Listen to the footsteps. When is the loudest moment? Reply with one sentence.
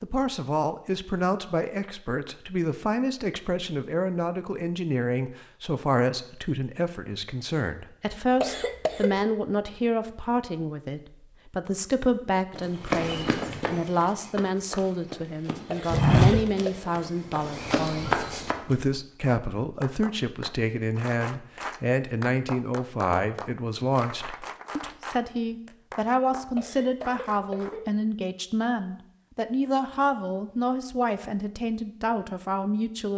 The volume of the footsteps peaks at 16 seconds.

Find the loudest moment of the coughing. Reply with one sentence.
The loudest moment of the coughing is at 9 seconds.